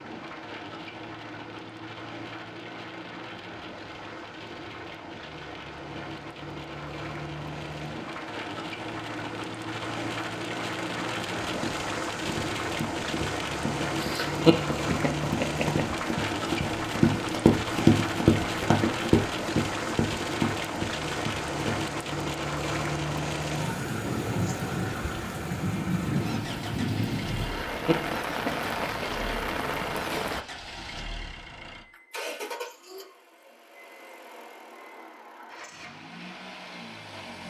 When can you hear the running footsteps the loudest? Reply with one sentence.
The volume of the running footsteps peaks at 18 seconds.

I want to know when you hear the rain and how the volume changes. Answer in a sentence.
The rain can be heard from 0.0 to 30.4 s, getting louder.